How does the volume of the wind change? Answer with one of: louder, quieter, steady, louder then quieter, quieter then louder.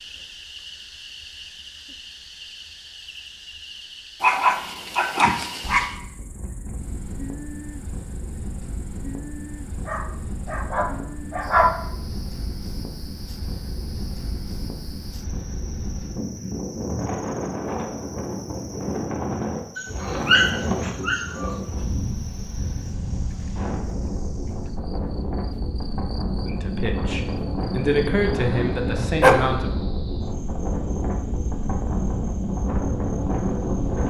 louder.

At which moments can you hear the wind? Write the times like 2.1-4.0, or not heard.
5.6-34.0.